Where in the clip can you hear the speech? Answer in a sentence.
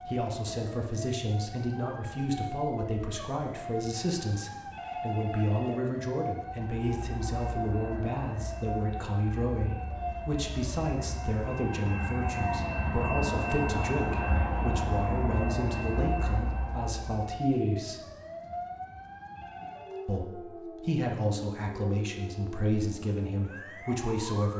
You can hear the speech from 0.1 to 18.0 s and from 20.1 to 24.5 s.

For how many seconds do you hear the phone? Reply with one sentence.
You can hear the phone for 2 seconds altogether.